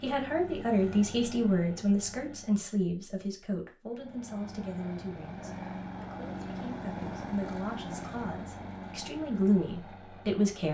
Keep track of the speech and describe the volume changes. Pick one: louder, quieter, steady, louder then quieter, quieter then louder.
quieter then louder.